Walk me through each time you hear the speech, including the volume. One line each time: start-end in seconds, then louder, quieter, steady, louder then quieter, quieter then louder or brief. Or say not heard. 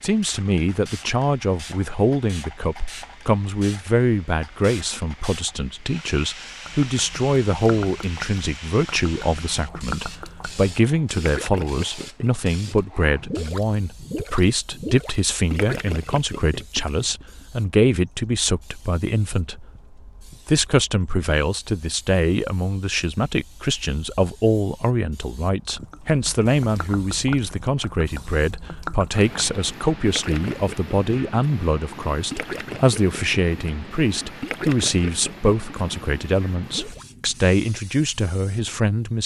0.0-19.6 steady
20.4-39.2 steady.